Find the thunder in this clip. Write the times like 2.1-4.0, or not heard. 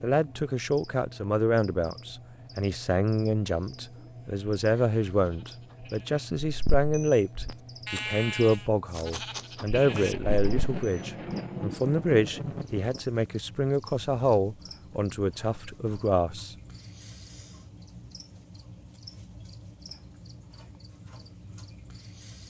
9.7-13.1.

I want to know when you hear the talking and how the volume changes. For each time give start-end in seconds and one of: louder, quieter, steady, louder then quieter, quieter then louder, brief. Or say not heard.
0.0-16.6 steady.